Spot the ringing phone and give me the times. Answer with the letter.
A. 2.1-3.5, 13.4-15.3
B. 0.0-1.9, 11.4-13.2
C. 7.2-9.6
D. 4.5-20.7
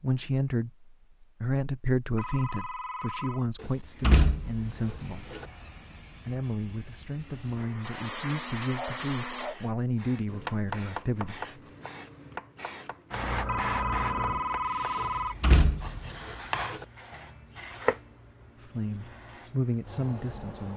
A.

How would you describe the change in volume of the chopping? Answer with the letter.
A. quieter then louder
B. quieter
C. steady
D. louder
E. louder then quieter
A.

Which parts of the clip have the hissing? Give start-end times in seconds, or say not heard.
4.5-20.7.